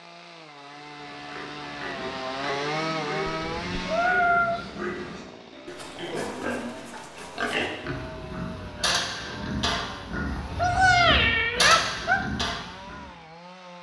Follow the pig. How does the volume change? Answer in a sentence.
The volume of the pig goes up.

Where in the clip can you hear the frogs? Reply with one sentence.
You can't hear the frogs here.